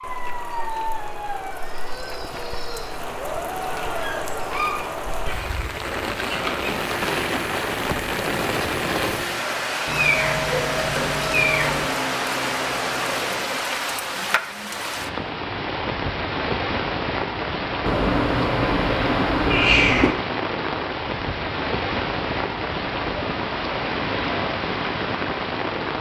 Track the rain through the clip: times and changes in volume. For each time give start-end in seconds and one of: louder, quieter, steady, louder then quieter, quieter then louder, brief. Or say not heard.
0.0-25.9 louder.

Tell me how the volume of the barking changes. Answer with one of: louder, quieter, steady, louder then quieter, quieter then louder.
quieter then louder.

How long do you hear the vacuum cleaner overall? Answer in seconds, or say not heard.
7 s.